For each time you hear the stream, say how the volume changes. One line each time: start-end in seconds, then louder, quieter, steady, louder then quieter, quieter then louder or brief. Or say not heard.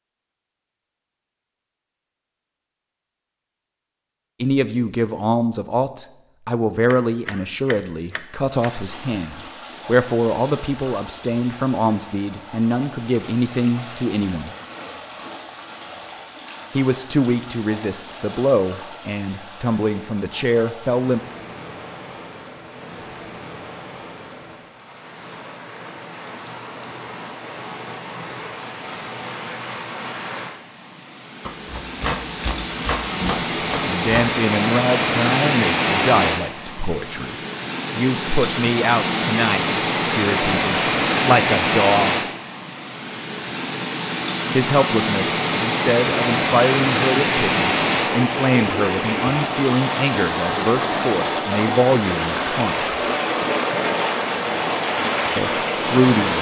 8.2-56.3 louder.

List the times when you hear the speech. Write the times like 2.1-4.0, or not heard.
4.4-14.5, 16.8-21.2, 33.1-37.4, 38.0-42.2, 44.5-53.1, 55.4-56.3.